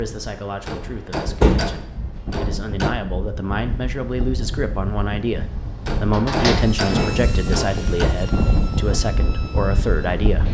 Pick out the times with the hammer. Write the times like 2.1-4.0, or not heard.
0.7-3.0, 5.8-8.2.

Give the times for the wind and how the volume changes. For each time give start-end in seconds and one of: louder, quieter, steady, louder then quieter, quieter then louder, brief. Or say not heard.
0.0-10.4 louder.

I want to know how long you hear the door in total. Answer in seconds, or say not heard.
2 s.